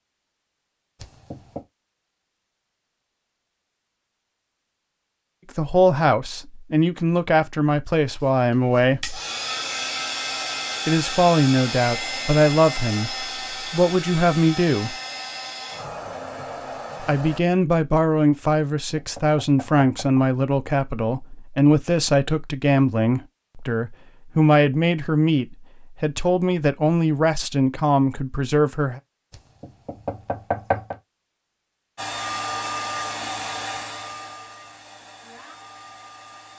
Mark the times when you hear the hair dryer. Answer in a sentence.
The hair dryer can be heard from 8.1 to 17.4 s and from 31.9 to 36.5 s.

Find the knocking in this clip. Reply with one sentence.
You can hear the knocking from 0.9 to 1.6 s, from 18.4 to 20.2 s and from 29.3 to 30.9 s.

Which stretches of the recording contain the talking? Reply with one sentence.
The talking can be heard from 5.5 to 9.2 s, from 10.8 to 14.9 s and from 17.0 to 29.0 s.